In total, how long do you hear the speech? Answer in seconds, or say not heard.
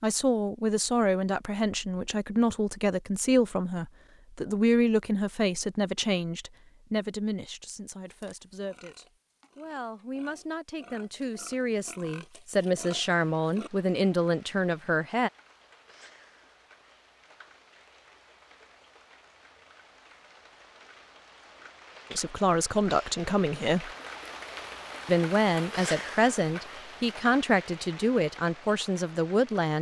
22 s.